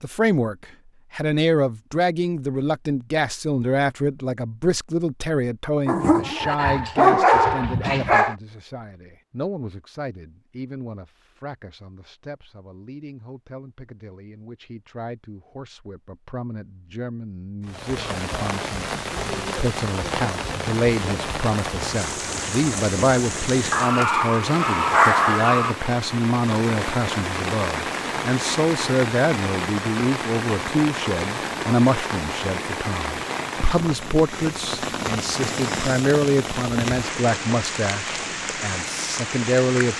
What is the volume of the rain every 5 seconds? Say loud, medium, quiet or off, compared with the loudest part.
off, off, off, loud, loud, loud, loud, loud.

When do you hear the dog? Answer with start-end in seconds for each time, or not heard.
5.8-8.3, 23.7-25.8.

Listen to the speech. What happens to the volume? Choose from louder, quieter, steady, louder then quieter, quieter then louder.
quieter then louder.